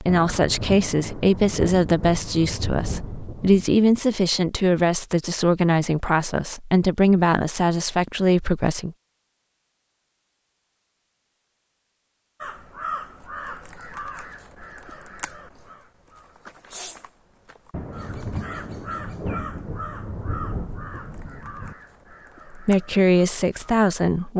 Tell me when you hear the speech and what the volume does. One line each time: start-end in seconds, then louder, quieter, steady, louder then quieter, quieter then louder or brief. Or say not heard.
0.0-8.9 steady
22.6-24.3 brief.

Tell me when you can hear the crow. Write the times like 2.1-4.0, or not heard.
12.4-23.8.